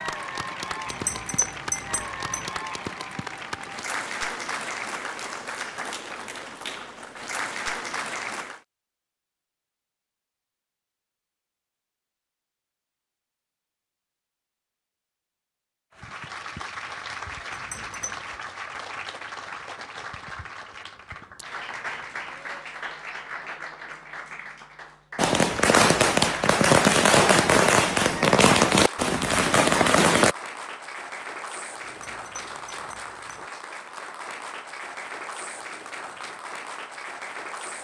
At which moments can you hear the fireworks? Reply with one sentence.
You can hear the fireworks from 25.1 to 30.4 s.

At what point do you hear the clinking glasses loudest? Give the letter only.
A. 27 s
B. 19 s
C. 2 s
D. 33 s
C.